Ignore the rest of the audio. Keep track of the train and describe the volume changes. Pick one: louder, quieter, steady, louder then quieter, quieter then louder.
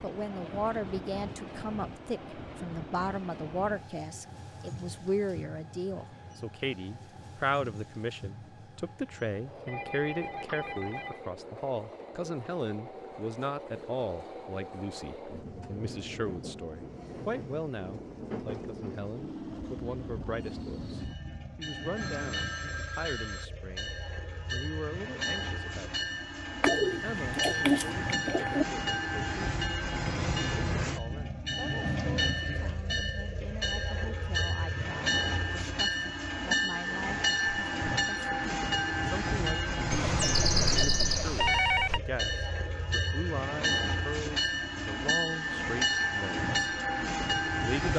louder.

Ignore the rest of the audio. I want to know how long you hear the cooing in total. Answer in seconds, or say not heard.
2 s.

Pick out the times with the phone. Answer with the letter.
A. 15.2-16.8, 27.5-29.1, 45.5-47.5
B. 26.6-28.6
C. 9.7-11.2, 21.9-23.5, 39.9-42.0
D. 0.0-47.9
C.